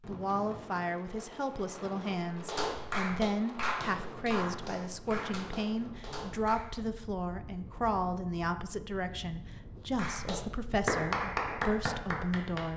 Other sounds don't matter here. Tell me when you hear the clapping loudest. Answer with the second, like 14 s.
11 s.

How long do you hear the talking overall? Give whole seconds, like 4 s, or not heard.
13 s.